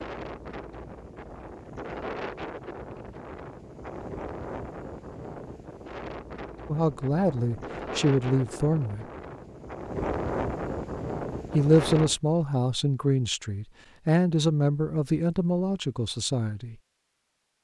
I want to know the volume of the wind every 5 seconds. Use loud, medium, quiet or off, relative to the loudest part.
medium, medium, loud, off.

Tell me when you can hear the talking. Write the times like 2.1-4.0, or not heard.
6.7-9.1, 11.5-16.8.